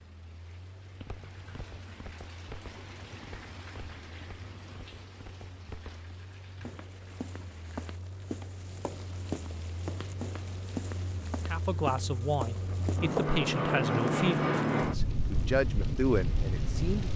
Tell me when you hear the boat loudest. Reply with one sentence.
The volume of the boat peaks at 14 seconds.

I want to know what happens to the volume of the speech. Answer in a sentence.
The loudness of the speech stays about the same.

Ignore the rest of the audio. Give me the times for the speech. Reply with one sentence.
The speech can be heard from 11.4 to 17.1 s.